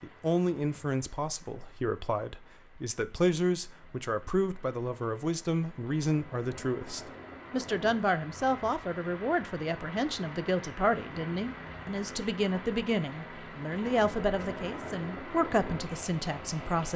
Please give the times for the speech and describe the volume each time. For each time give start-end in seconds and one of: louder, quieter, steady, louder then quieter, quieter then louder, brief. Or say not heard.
0.0-16.9 steady.